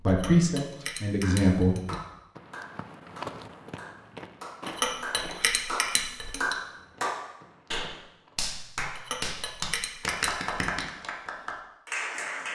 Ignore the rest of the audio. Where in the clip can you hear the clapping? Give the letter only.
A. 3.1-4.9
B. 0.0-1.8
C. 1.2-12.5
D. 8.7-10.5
C.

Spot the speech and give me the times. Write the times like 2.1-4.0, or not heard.
0.0-1.8.